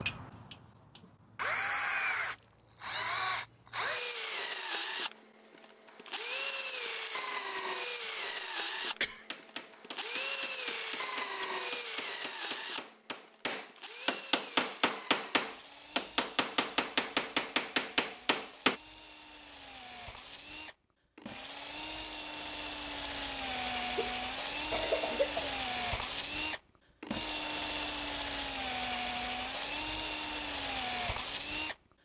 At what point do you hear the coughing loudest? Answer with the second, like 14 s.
25 s.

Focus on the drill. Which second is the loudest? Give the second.
2 s.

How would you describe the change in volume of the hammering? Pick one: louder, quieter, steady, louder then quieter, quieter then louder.
louder.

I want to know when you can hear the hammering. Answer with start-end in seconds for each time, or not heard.
9.3-18.8.